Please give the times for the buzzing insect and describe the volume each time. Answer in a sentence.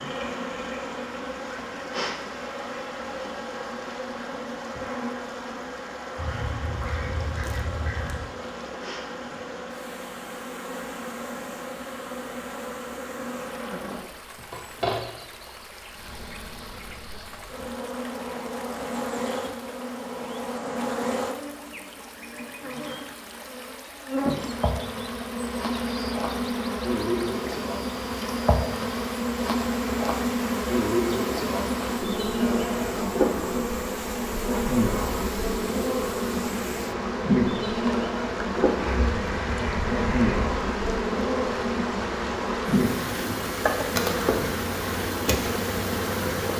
You can hear the buzzing insect from 0.0 to 46.5 s, getting louder.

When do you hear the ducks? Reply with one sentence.
The ducks can be heard from 6.2 to 8.2 s and from 38.8 to 40.5 s.